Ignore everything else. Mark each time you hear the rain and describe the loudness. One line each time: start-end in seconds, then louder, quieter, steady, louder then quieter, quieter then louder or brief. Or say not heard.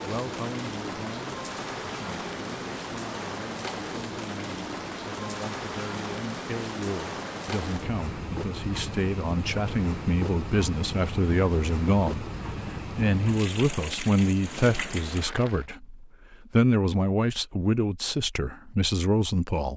0.0-15.7 steady.